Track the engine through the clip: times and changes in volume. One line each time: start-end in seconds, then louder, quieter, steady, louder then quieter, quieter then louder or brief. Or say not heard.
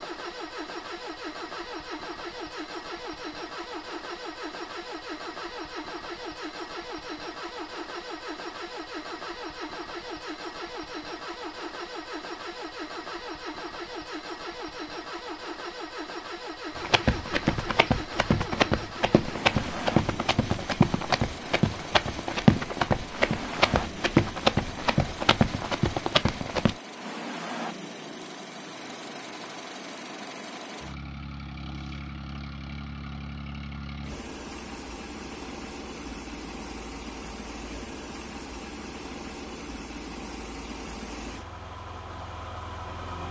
0.0-43.2 steady.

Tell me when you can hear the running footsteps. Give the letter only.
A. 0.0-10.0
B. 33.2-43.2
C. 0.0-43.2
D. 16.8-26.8
D.